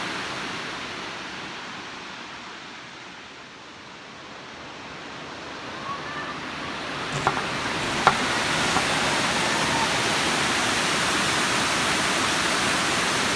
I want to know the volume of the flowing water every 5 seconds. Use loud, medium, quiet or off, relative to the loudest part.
quiet, loud, loud.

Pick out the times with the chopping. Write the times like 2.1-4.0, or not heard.
7.1-8.8.